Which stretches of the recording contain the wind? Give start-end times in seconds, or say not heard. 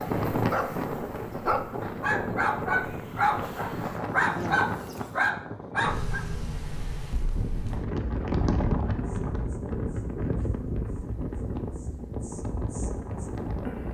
0.0-13.8.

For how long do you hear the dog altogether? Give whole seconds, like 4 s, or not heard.
6 s.